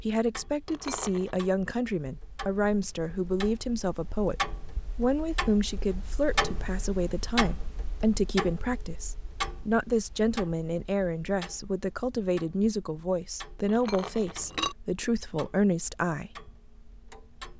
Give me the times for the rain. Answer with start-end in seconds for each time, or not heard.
not heard.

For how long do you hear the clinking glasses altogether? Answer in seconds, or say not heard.
2 s.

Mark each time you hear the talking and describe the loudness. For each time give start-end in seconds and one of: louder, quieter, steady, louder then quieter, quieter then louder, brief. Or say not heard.
0.0-4.3 steady
5.0-16.3 steady.